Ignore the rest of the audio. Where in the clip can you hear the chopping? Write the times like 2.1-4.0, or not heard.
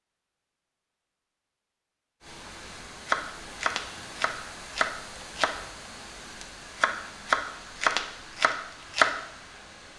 3.0-5.5, 6.4-9.1.